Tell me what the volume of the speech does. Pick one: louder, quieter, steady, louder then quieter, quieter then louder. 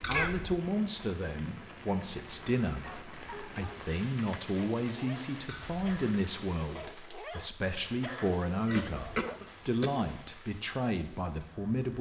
steady.